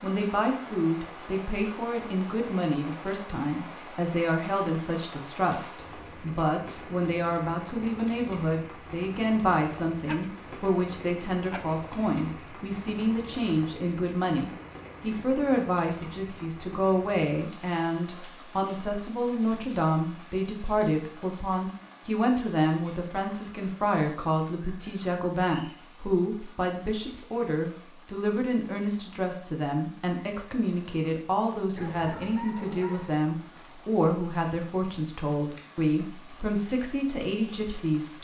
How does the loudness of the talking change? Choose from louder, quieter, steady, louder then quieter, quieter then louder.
steady.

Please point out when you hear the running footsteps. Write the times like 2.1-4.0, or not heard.
not heard.